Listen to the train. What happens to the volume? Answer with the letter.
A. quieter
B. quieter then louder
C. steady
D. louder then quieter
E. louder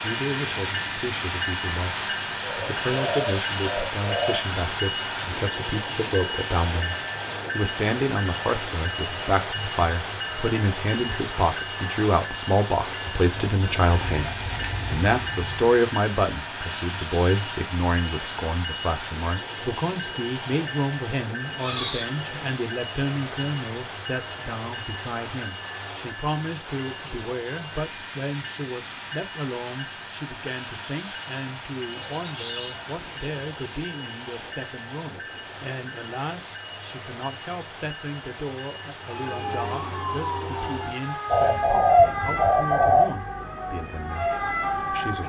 A.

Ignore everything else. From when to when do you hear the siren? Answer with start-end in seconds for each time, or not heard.
39.0-45.2.